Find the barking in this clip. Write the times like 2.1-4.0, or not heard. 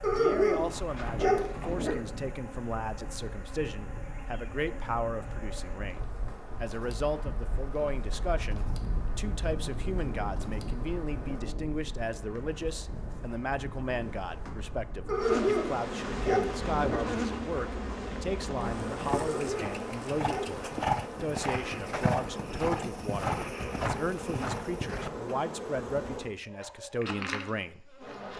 0.0-1.9, 15.1-17.0, 19.1-20.6.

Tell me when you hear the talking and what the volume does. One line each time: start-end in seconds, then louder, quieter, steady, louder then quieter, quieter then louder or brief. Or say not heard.
0.1-28.3 steady.